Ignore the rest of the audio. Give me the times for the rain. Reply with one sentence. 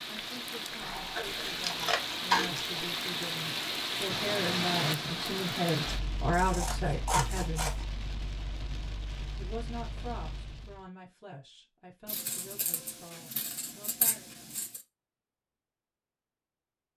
You can hear the rain from 0.0 to 10.9 s.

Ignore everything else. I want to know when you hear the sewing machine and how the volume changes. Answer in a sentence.
The sewing machine can't be heard in this clip.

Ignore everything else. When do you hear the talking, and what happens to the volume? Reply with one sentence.
You can hear the talking from 0.1 to 7.8 s, getting louder; and from 9.3 to 14.3 s, getting quieter.